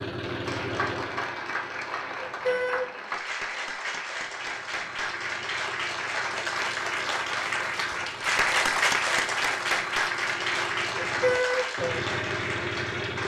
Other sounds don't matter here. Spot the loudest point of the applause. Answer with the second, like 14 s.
9 s.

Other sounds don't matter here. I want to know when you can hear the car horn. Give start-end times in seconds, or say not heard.
2.2-2.9, 11.2-11.7.